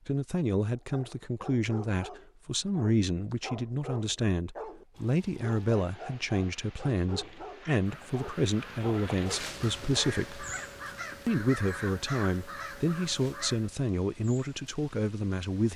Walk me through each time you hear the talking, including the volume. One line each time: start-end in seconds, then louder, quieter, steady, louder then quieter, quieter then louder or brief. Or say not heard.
0.1-10.4 steady
11.2-15.7 steady.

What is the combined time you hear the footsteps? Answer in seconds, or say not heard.
not heard.